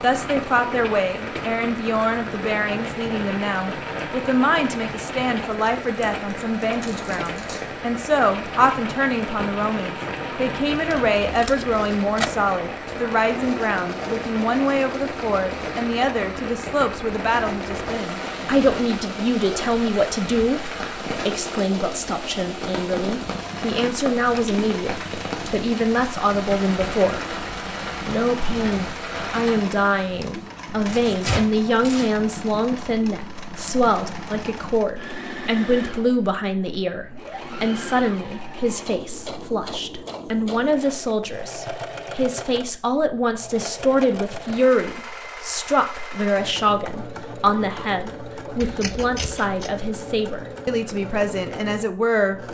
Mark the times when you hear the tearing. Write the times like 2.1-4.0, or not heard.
6.7-7.6, 30.9-32.1.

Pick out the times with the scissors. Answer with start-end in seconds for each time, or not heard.
10.9-12.3, 48.6-49.8.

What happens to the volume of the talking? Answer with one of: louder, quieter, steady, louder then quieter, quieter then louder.
steady.